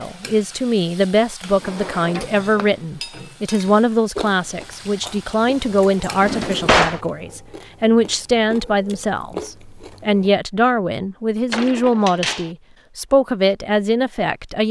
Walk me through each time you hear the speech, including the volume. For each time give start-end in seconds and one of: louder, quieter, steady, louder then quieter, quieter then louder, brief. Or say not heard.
0.0-14.6 steady.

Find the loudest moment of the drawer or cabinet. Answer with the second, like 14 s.
7 s.